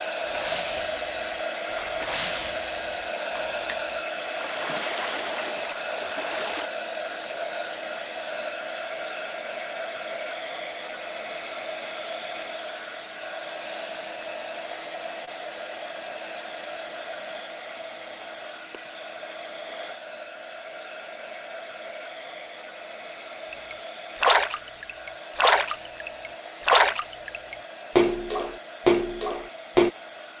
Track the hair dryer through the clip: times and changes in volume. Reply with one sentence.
The hair dryer can be heard from 0.0 to 30.3 s, getting quieter.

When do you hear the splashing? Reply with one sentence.
The splashing can be heard from 0.2 to 6.7 s and from 23.5 to 29.9 s.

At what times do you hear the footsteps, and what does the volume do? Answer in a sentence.
You can't hear the footsteps here.